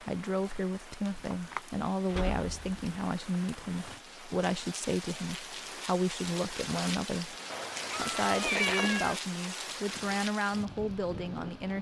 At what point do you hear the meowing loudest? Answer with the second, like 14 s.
9 s.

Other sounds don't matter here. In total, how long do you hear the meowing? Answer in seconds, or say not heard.
2 s.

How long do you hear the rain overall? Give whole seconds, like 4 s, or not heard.
12 s.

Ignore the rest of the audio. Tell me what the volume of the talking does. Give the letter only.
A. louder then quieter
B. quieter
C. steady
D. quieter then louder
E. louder
C.